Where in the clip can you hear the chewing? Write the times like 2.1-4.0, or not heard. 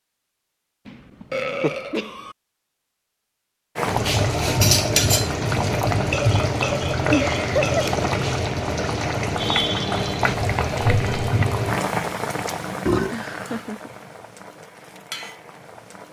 not heard.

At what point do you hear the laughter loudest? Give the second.
8 s.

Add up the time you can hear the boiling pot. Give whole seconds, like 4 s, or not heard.
12 s.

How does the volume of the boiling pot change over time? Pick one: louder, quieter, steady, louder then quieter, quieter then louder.
quieter.